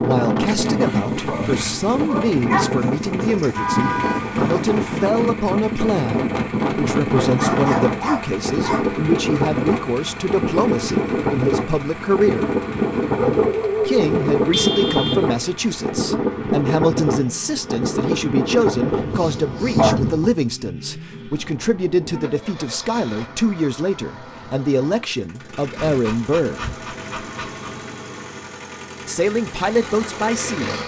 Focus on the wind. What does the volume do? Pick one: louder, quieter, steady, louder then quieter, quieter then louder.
steady.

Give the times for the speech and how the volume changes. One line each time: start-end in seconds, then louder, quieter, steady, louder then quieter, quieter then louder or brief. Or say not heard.
0.0-12.6 steady
13.8-26.6 steady
29.1-30.7 brief.